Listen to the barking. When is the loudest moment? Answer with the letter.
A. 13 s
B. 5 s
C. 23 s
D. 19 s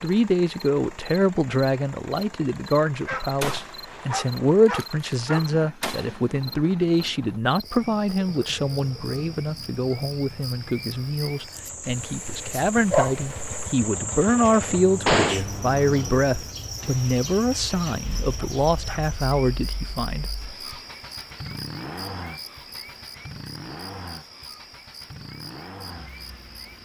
A.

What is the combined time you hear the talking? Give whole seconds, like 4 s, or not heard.
20 s.